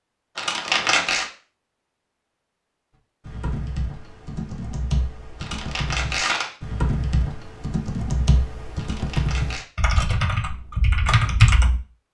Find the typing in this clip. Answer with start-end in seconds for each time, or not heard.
3.2-11.8.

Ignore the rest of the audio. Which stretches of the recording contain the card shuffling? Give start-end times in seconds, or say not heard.
0.3-1.2, 5.4-6.5, 8.8-9.7.